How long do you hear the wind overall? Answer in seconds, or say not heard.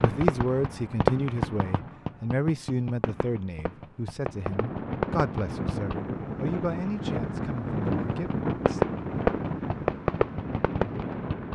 7 s.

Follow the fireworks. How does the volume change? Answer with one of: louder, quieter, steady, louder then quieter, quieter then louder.
quieter then louder.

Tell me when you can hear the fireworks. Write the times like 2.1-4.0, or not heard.
0.0-6.0, 7.9-11.5.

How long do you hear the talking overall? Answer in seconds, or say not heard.
9 s.